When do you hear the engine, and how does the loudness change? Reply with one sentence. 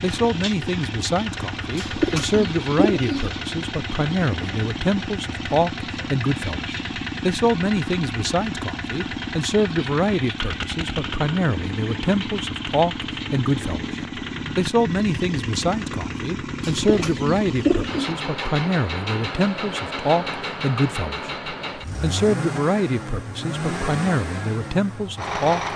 You can hear the engine from 0.0 to 25.7 s, at a steady volume.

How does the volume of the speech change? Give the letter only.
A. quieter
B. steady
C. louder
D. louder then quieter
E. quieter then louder
B.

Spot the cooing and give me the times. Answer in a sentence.
The cooing can be heard from 1.8 to 3.2 s and from 16.6 to 18.1 s.